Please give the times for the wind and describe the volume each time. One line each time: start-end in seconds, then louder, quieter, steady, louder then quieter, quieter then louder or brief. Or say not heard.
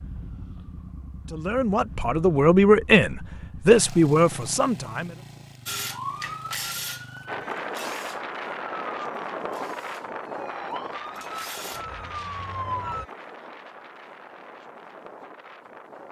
7.2-16.0 quieter.